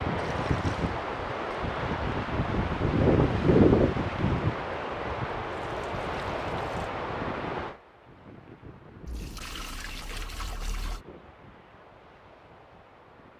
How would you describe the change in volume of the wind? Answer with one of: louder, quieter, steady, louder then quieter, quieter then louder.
louder then quieter.